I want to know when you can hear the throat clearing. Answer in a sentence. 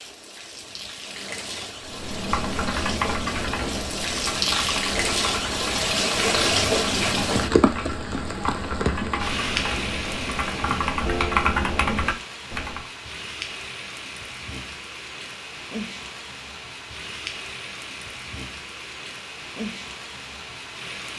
The throat clearing can't be heard in this clip.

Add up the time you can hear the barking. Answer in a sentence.
You can't hear the barking here.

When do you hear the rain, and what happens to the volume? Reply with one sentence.
The rain can be heard from 0.0 to 21.1 s, getting louder then quieter.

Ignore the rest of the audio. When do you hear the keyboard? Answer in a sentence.
The keyboard can be heard from 1.9 to 12.8 s.